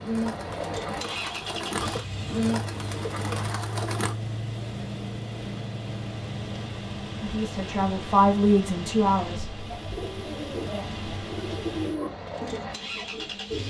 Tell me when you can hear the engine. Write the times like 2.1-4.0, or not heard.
0.0-13.6.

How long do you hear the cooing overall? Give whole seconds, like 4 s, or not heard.
8 s.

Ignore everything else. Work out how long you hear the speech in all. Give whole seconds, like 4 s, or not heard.
2 s.